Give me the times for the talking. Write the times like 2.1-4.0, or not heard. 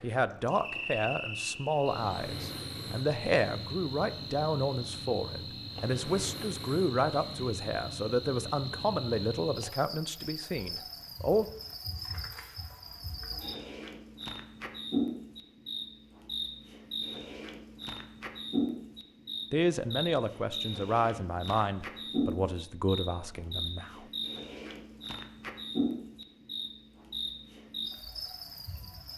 0.0-11.4, 19.5-24.1.